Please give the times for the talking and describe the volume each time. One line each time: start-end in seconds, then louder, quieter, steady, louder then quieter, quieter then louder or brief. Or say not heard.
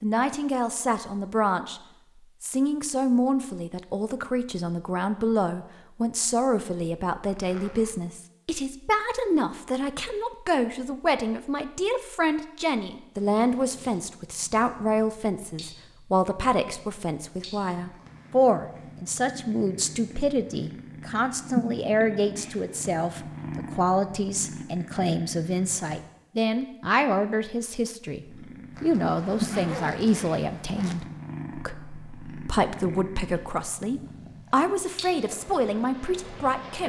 0.0-1.8 brief
2.4-36.8 steady.